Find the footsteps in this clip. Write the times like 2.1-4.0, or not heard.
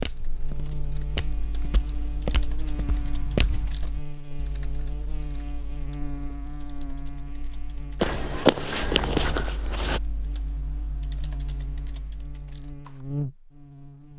0.0-3.9, 8.0-10.0.